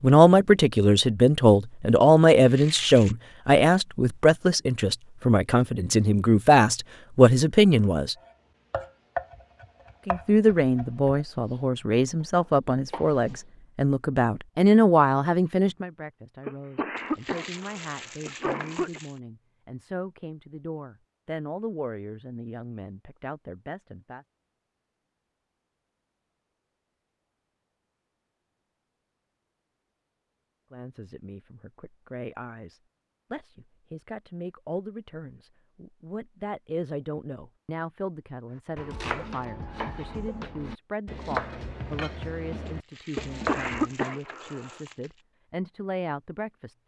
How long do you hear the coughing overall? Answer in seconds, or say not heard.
4 s.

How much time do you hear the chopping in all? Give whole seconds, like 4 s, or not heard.
10 s.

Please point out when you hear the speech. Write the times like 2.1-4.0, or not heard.
0.0-8.2, 10.1-24.2, 30.7-46.8.